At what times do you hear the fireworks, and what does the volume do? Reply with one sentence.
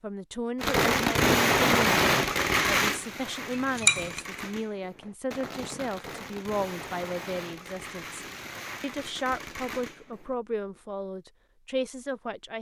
The fireworks can be heard from 0.6 to 10.3 s, getting quieter.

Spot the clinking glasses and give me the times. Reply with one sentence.
The clinking glasses can be heard from 3.5 to 4.2 s.